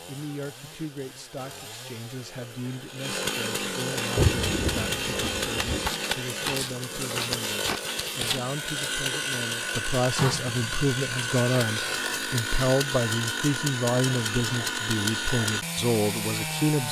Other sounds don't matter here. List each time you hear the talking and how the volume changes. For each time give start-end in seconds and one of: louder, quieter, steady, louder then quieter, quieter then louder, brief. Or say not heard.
0.1-16.8 louder.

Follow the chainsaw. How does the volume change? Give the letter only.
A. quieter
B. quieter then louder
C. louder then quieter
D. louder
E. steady
D.